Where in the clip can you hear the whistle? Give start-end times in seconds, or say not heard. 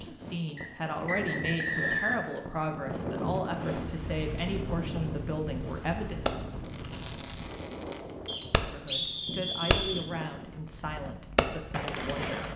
0.6-2.3, 8.2-10.1.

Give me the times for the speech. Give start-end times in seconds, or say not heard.
0.0-6.2, 8.6-12.5.